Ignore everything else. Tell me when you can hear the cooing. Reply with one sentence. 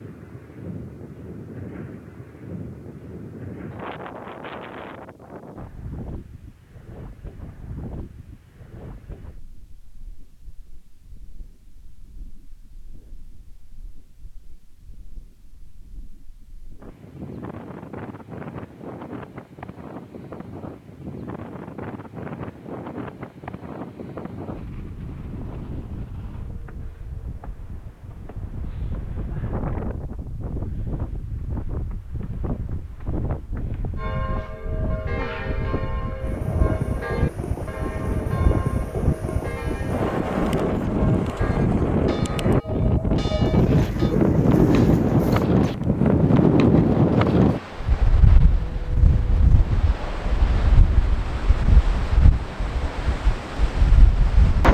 You can hear the cooing from 43.5 to 45.5 s.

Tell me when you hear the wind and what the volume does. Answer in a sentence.
You can hear the wind from 0.0 to 54.6 s, getting louder.